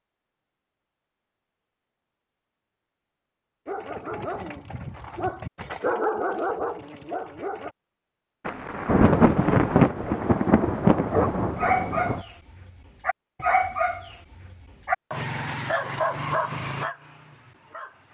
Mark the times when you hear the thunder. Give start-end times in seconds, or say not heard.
8.4-12.2.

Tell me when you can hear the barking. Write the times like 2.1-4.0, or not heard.
3.6-7.8, 11.1-18.0.